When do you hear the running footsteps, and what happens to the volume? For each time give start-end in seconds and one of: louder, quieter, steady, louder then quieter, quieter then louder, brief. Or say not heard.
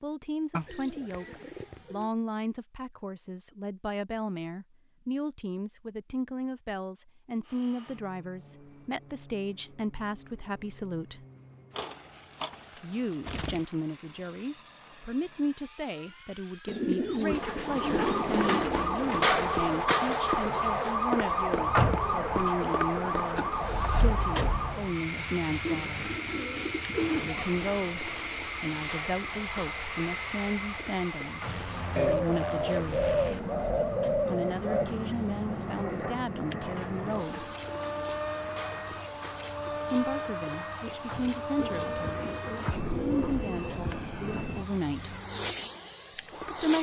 not heard.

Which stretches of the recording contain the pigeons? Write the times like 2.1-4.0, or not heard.
0.5-2.1, 11.8-13.7, 16.6-18.7, 25.6-27.4, 31.9-34.9, 41.5-44.1.